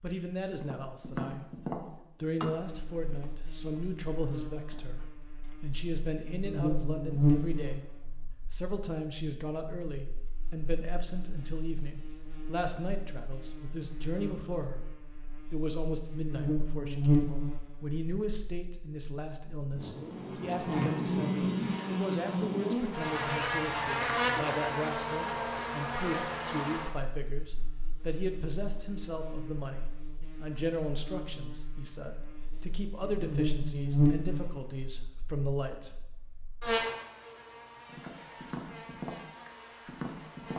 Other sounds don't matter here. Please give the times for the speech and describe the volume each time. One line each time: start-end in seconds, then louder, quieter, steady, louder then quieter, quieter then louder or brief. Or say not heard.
0.0-36.0 steady.